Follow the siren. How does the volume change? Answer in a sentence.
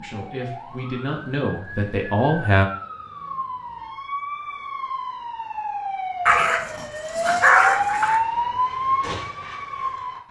The volume of the siren goes up.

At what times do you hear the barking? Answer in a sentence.
The barking can be heard from 6.2 to 8.2 s.